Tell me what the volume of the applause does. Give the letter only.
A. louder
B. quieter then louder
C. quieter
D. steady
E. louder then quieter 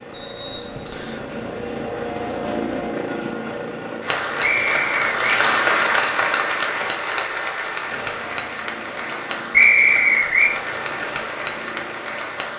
C.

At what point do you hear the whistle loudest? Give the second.
10 s.